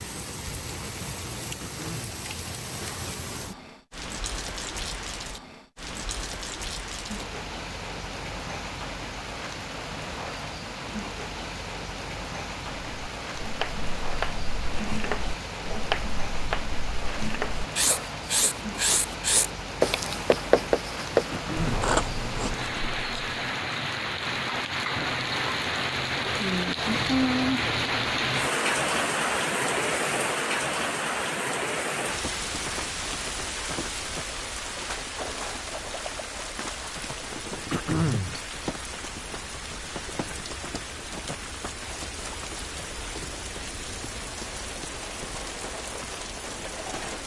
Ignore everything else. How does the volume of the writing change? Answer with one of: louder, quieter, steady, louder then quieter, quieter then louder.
louder.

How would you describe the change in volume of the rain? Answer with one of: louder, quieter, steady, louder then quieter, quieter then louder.
louder then quieter.